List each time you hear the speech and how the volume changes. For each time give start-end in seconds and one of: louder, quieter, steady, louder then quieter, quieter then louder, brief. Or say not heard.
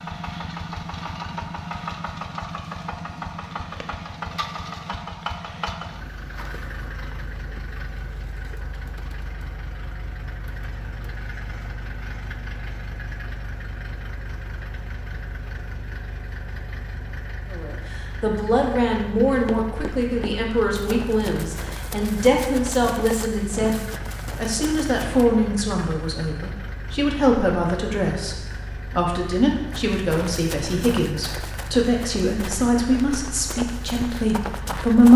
17.5-35.1 steady.